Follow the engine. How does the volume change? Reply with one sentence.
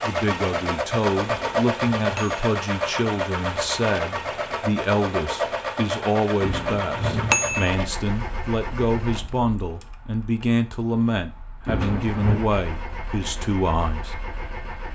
The loudness of the engine goes down, then up.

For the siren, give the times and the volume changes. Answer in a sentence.
The siren can't be heard in this clip.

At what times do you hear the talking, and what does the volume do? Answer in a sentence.
You can hear the talking from 0.0 to 14.2 s, at a steady volume.